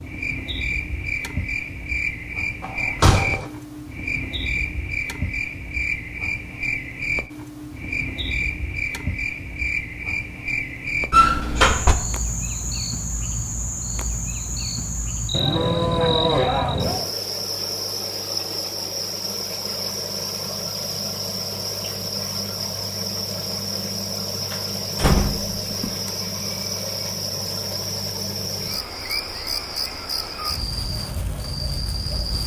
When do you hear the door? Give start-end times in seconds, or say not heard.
2.6-3.5, 11.1-11.9, 24.5-25.9.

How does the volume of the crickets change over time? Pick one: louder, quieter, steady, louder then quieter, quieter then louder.
steady.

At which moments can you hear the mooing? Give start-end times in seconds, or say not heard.
15.3-17.1.